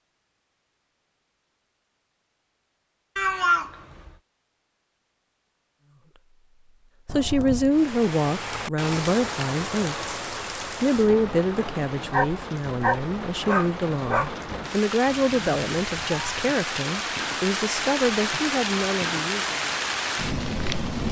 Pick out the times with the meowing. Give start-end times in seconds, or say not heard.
3.1-4.1, 7.0-7.8, 15.1-16.5.